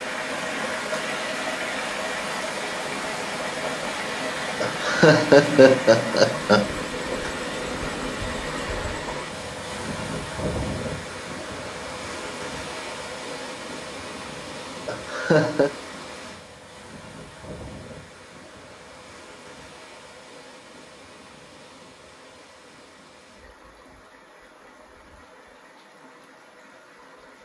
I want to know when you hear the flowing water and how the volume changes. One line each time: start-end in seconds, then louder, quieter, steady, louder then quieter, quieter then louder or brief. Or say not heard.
0.0-27.4 quieter.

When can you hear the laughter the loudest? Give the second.
5 s.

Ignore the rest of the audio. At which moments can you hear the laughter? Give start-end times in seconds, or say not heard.
4.6-6.7, 14.8-15.7.